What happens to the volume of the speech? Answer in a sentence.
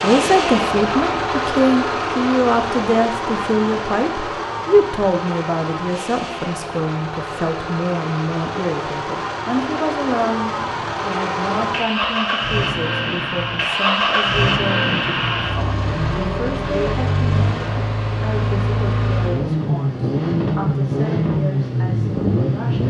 The volume of the speech goes down.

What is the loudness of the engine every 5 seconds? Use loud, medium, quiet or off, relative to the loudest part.
loud, medium, loud, loud, loud.